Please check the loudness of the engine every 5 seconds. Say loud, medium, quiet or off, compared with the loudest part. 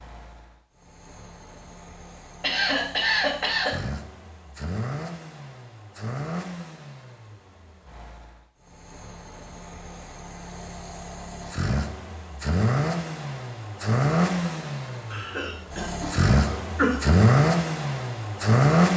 quiet, quiet, medium, loud.